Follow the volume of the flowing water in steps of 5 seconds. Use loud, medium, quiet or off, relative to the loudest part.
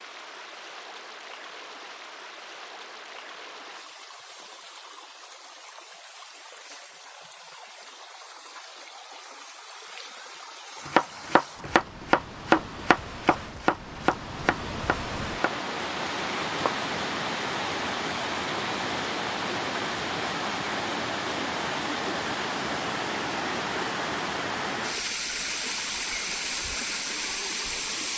quiet, quiet, medium, loud, loud, loud.